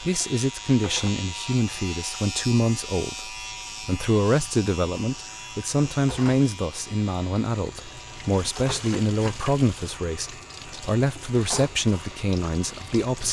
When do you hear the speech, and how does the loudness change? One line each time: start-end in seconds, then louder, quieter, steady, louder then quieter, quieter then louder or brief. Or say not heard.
0.0-13.2 steady.